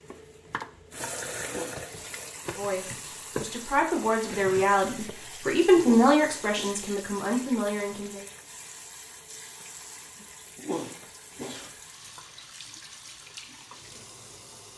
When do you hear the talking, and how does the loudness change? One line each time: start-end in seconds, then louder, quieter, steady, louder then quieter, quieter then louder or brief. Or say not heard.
2.5-8.2 louder then quieter.